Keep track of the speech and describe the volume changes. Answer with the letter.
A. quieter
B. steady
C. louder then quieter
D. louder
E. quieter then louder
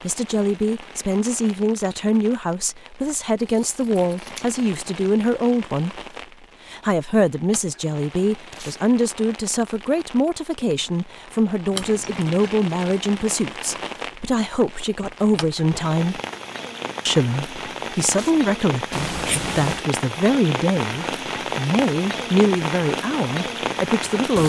B.